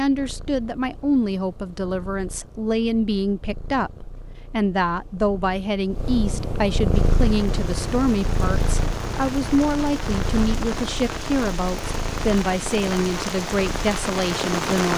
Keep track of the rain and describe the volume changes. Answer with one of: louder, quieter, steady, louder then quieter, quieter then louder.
louder.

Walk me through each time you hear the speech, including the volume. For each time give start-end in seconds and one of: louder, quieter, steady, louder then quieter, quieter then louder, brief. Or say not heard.
0.0-14.9 steady.